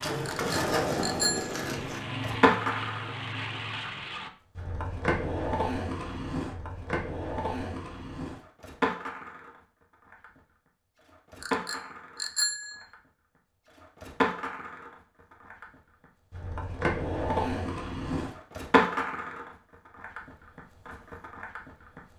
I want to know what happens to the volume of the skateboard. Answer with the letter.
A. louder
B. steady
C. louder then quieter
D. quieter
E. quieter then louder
E.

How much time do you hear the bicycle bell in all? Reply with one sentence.
You can hear the bicycle bell for 3 seconds altogether.